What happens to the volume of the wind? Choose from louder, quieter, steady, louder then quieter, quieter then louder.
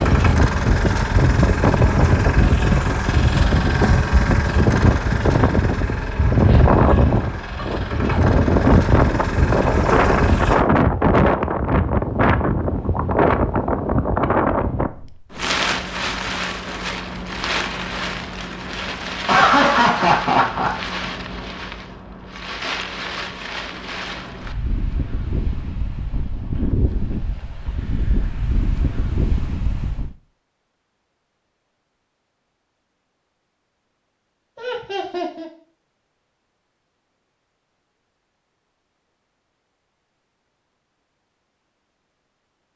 quieter.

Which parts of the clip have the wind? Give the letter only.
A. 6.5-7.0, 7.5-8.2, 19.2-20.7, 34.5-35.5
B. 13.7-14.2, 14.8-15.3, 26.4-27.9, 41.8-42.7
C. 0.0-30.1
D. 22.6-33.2
C.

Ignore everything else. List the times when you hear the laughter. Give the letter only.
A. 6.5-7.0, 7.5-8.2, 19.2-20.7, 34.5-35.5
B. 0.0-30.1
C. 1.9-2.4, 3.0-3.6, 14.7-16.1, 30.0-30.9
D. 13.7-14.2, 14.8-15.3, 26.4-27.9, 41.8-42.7
A.